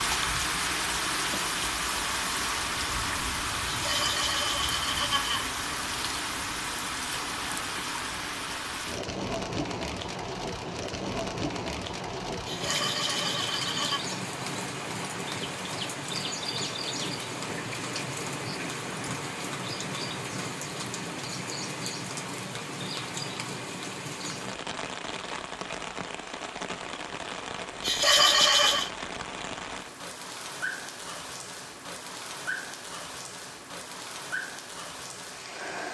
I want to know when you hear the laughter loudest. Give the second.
28 s.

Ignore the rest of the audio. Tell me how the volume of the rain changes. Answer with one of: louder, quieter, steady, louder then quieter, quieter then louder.
quieter.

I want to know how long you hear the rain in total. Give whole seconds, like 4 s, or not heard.
36 s.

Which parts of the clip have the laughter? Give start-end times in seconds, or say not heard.
3.6-5.5, 12.4-14.0, 27.8-28.9.